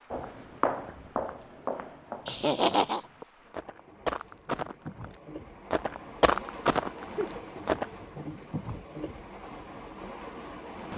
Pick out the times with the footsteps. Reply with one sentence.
The footsteps can be heard from 0.1 to 7.8 s.